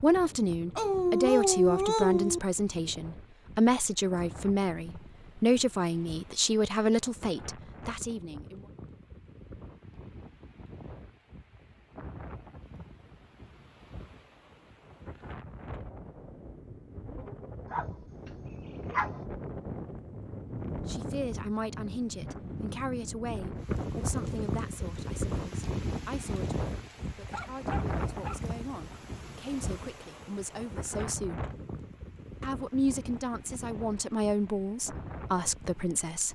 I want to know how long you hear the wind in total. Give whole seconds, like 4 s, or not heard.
36 s.